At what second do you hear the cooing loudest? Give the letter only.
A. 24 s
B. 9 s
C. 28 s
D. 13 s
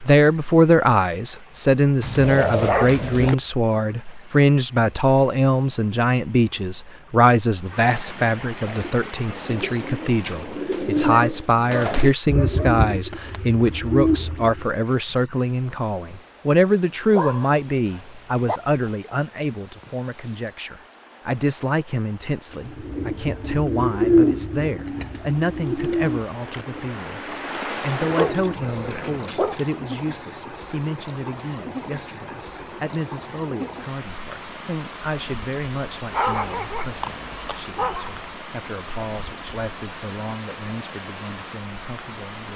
A.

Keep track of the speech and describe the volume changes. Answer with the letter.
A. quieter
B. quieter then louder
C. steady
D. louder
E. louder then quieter
A.